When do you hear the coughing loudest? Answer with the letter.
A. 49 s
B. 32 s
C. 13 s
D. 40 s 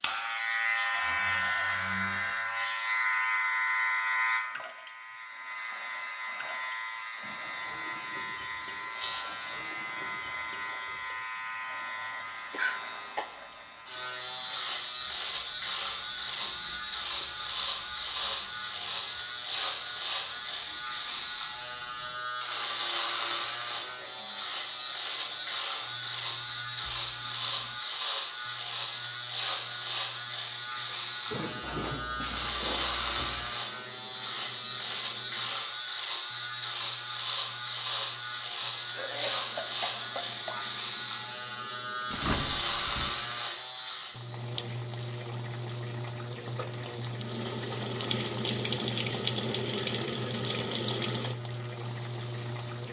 C.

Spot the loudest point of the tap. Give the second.
49 s.